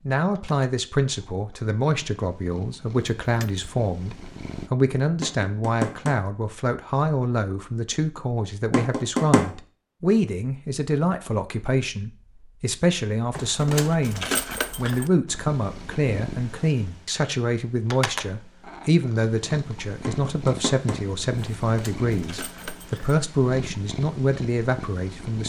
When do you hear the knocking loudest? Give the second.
9 s.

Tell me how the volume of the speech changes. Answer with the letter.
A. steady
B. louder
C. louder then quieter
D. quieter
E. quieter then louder
A.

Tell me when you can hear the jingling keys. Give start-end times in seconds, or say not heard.
3.2-3.6, 13.3-15.1, 21.4-23.1.